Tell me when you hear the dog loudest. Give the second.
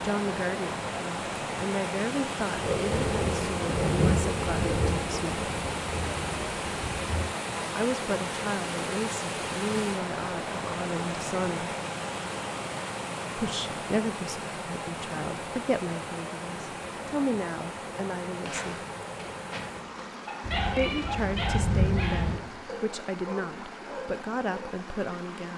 21 s.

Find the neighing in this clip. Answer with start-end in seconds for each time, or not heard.
not heard.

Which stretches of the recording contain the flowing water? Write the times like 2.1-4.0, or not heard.
0.0-25.5.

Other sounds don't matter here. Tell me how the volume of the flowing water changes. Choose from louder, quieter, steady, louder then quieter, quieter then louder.
quieter.